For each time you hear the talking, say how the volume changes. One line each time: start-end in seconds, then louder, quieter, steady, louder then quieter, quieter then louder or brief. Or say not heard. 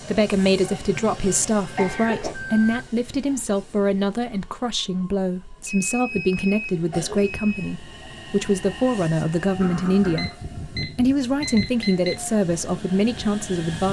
0.1-13.8 steady.